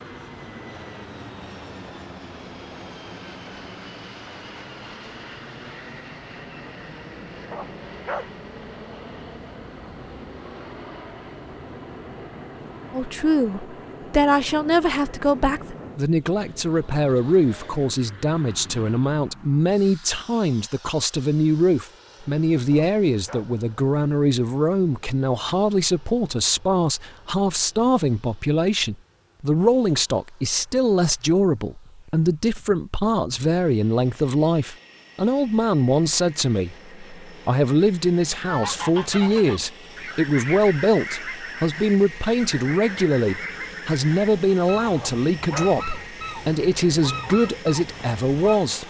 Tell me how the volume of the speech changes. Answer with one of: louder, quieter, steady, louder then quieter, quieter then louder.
steady.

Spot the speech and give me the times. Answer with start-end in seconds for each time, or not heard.
12.9-48.8.